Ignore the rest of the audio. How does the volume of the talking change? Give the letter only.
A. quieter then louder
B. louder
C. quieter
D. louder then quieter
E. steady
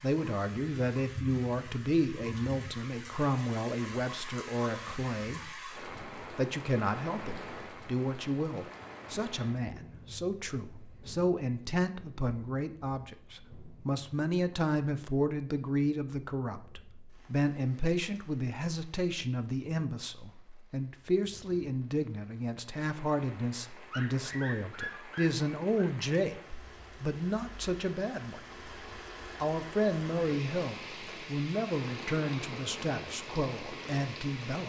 E.